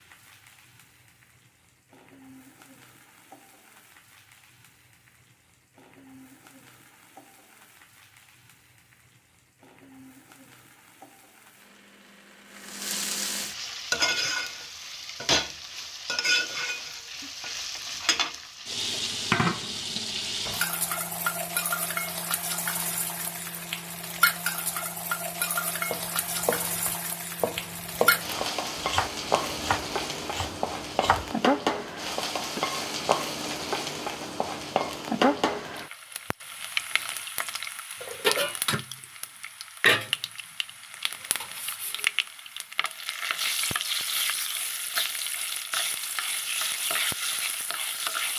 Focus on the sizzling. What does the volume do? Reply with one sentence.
The loudness of the sizzling goes up.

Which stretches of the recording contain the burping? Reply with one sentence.
You can't hear the burping here.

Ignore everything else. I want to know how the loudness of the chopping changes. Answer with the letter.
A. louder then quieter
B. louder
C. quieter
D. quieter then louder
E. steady
D.